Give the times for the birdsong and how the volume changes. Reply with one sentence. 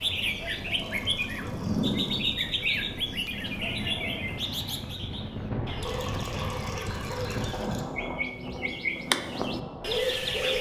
You can hear the birdsong from 0.0 to 10.5 s, getting quieter then louder.